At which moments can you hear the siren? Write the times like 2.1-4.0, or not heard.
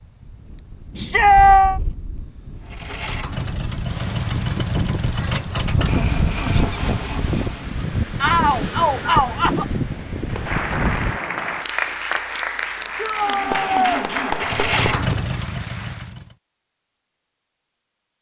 not heard.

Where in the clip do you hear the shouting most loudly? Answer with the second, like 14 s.
1 s.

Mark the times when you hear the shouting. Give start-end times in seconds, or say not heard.
0.9-1.8, 8.2-9.7, 12.9-14.1.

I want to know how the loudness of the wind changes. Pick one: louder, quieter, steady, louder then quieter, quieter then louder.
louder.